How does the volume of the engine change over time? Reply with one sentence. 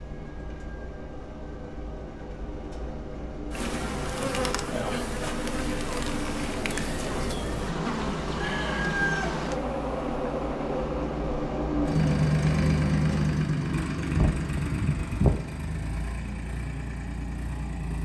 The volume of the engine goes up, then down.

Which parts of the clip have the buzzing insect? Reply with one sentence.
You can hear the buzzing insect from 3.5 to 15.4 s.